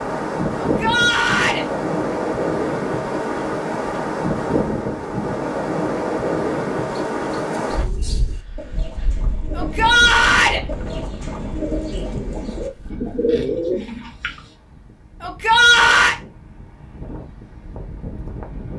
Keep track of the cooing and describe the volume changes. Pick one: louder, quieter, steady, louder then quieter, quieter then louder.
louder.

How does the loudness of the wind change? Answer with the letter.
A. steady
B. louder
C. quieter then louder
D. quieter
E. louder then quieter
D.